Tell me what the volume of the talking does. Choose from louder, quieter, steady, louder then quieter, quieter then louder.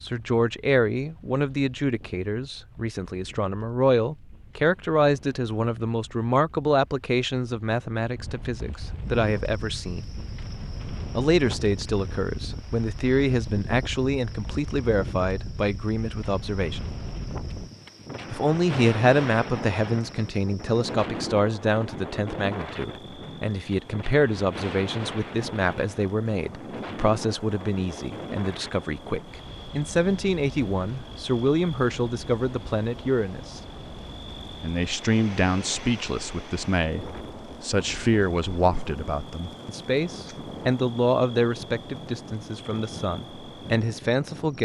steady.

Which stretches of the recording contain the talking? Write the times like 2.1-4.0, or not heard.
0.0-10.1, 11.2-16.9, 18.3-33.6, 34.6-44.5.